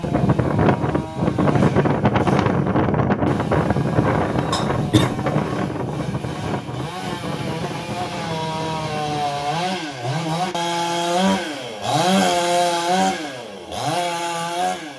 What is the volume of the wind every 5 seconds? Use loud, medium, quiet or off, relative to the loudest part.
loud, medium, off.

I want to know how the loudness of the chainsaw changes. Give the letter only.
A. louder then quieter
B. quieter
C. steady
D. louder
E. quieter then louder
D.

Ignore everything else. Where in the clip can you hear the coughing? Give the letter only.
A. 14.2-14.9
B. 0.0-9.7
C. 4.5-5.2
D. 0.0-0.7
C.